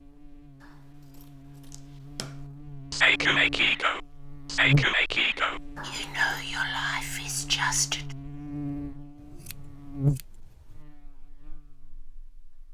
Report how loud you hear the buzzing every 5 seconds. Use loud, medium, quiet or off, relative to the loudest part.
loud, medium, loud.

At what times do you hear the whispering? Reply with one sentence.
You can hear the whispering from 2.9 to 8.2 s.